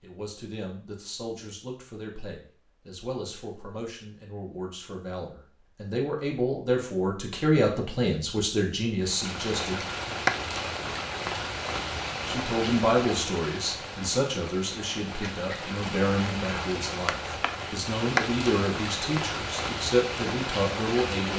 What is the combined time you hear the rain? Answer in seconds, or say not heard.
12 s.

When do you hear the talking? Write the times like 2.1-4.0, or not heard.
0.0-9.8, 12.2-21.3.